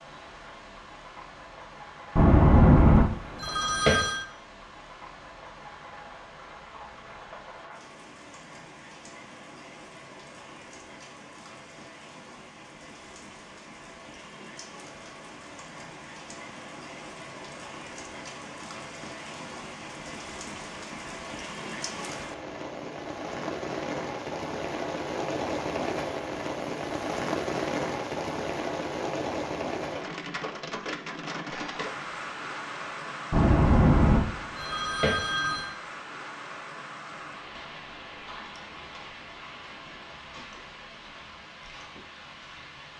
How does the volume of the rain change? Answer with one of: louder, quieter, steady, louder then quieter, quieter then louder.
louder then quieter.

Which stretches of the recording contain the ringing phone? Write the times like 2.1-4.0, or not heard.
2.1-4.2, 33.3-35.7.